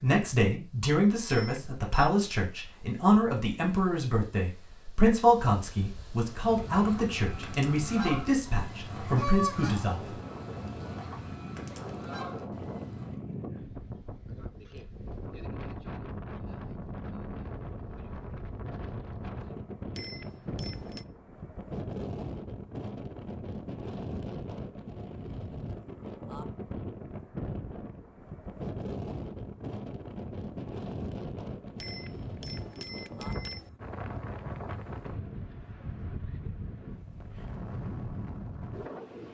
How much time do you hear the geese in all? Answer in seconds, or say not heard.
7 s.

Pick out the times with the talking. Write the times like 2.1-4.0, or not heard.
0.0-10.2.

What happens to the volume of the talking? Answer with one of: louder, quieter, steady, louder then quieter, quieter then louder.
steady.